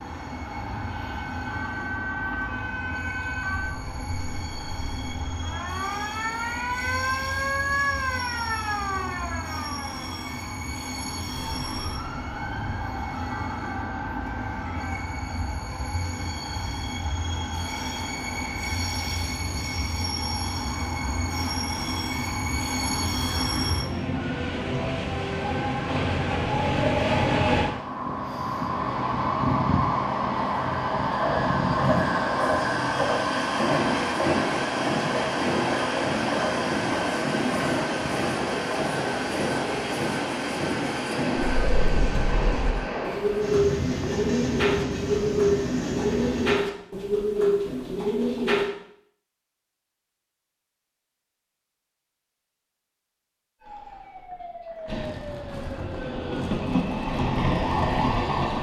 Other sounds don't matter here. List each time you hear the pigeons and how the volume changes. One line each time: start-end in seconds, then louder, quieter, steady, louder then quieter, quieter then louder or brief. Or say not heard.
41.4-48.7 louder.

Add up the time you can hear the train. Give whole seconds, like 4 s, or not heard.
50 s.